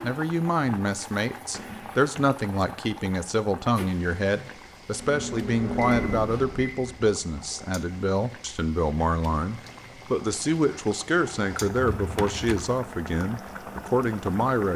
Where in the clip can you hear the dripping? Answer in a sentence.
The dripping can't be heard in this clip.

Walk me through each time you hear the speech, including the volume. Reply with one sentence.
You can hear the speech from 0.0 to 14.7 s, at a steady volume.